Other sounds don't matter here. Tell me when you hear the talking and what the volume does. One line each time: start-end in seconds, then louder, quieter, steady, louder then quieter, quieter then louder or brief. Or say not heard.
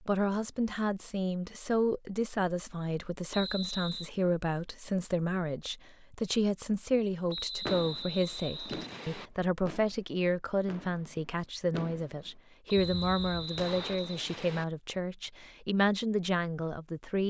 0.0-17.2 steady.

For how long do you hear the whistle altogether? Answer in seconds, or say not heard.
5 s.